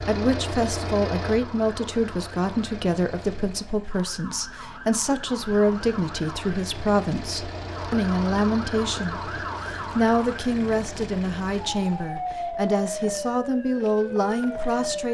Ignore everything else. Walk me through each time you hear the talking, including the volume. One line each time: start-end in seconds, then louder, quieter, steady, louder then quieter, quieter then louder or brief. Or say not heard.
0.0-15.0 steady.